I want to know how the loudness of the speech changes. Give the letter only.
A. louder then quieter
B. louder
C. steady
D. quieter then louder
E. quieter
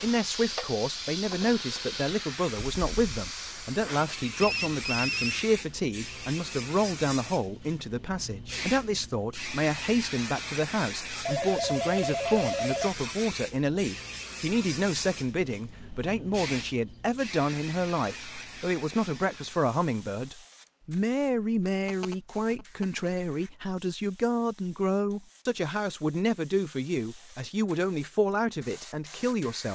C.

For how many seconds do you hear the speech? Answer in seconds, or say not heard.
30 s.